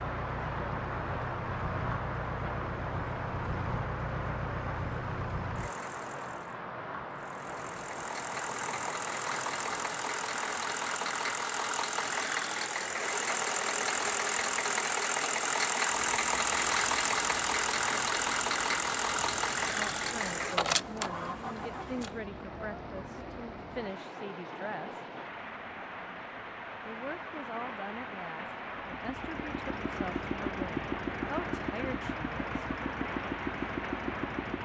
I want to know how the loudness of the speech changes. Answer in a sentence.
The loudness of the speech stays about the same.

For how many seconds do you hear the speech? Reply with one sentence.
You can hear the speech for 11 seconds altogether.